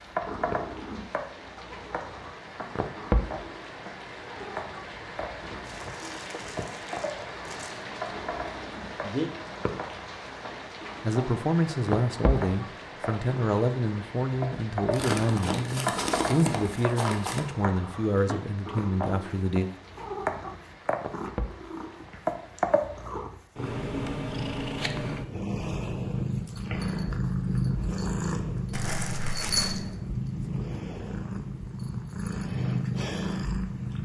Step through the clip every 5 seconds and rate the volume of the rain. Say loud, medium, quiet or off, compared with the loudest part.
loud, loud, loud, medium, medium, off, off.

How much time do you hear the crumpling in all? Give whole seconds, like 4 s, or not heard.
6 s.